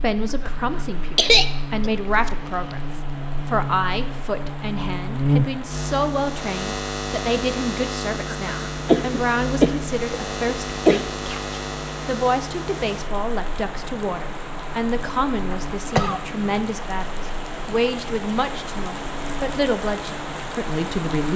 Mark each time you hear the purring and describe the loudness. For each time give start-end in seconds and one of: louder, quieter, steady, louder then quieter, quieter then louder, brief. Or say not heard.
not heard.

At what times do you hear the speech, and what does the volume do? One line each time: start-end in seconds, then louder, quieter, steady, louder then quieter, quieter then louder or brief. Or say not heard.
0.0-21.3 steady.